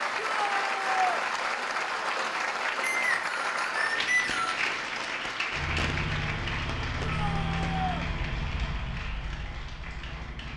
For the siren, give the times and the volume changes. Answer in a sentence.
The siren can't be heard in this clip.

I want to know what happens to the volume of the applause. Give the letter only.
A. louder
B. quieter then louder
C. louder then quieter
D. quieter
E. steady
D.